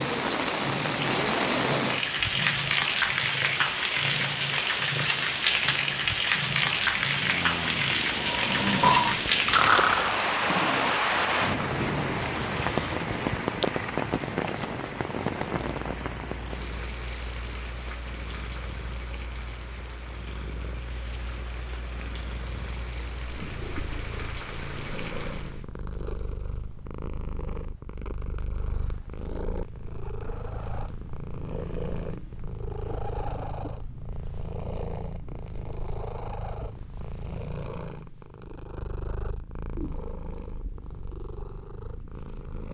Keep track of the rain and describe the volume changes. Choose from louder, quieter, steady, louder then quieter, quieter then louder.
quieter.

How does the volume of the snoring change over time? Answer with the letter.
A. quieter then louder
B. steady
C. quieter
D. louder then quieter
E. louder
D.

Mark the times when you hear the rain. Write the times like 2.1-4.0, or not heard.
0.0-25.6.